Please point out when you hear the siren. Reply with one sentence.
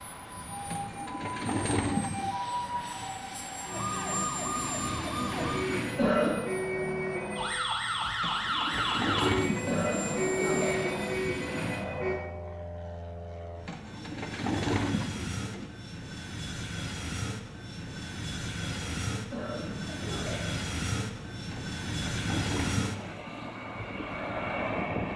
The siren can be heard from 0.0 to 12.2 s.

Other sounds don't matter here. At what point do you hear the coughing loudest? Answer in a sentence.
The loudest moment of the coughing is at 6 seconds.